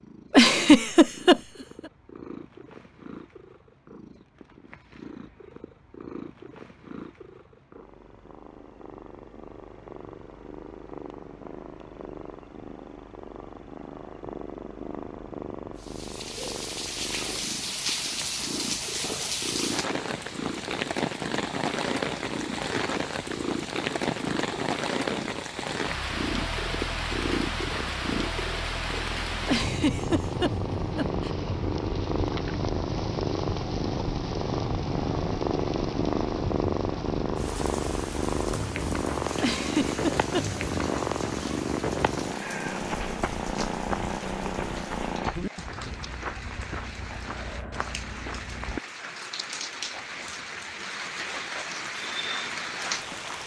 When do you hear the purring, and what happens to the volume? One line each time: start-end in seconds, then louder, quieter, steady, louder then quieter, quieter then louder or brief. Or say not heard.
0.0-45.4 louder.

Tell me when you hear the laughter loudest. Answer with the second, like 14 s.
1 s.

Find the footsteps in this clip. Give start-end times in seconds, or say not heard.
42.8-48.8.